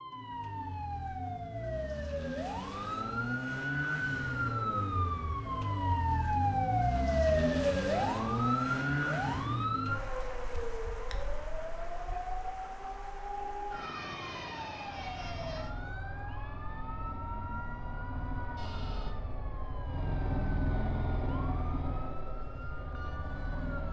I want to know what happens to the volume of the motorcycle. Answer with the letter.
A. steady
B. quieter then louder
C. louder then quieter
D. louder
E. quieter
C.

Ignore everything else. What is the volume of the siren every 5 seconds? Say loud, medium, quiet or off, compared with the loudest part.
medium, loud, medium, quiet, quiet.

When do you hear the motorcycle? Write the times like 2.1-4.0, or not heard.
14.9-23.8.